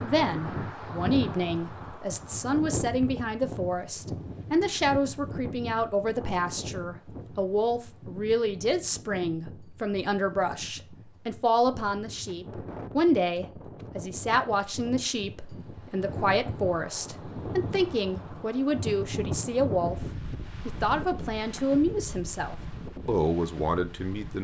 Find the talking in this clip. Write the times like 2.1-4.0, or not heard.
0.0-19.9, 20.6-24.3.